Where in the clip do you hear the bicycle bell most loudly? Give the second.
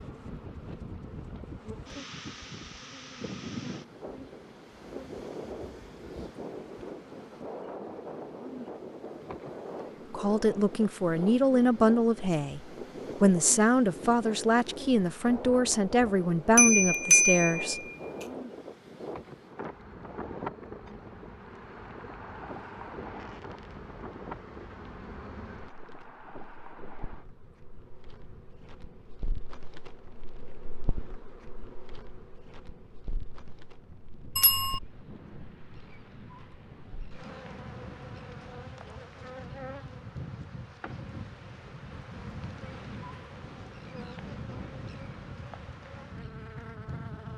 17 s.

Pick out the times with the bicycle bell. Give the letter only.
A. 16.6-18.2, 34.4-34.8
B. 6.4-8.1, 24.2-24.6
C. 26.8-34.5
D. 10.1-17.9
A.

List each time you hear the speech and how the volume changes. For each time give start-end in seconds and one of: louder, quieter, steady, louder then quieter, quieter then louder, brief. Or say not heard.
10.1-17.9 steady.